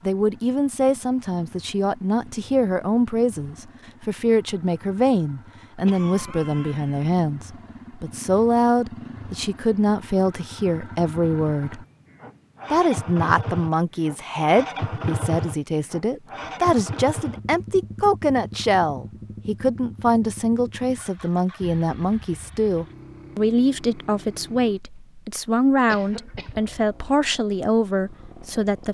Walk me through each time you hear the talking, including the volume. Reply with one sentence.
The talking can be heard from 0.1 to 11.8 s, at a steady volume; and from 12.7 to 28.8 s, at a steady volume.